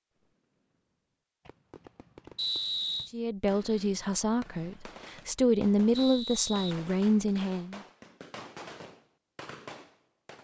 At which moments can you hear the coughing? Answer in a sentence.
You can't hear the coughing here.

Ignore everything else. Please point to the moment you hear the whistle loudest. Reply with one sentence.
The volume of the whistle peaks at 3 seconds.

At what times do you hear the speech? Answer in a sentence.
You can hear the speech from 3.1 to 7.8 s.